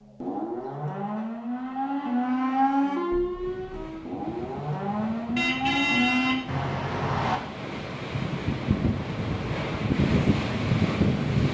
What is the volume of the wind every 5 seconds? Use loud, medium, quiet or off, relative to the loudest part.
quiet, medium, loud.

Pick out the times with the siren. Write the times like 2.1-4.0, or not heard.
0.0-6.4.